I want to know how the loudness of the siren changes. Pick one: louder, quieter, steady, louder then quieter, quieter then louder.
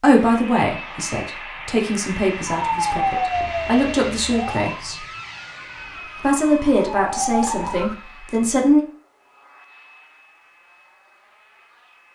quieter then louder.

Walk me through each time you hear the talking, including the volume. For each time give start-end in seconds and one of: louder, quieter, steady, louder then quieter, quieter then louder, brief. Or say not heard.
0.0-5.0 steady
6.2-8.8 brief.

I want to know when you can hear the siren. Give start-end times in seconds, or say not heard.
2.5-8.0.